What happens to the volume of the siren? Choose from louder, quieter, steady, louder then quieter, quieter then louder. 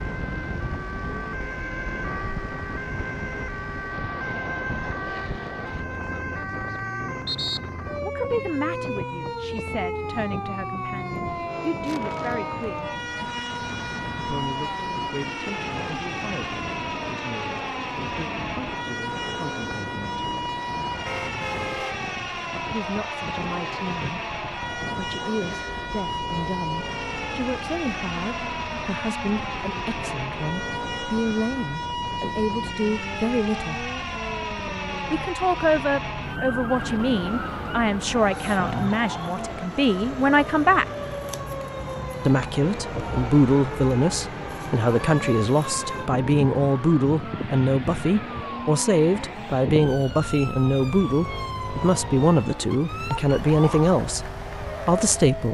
steady.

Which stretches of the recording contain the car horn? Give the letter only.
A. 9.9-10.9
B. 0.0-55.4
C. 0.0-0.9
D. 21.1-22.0
D.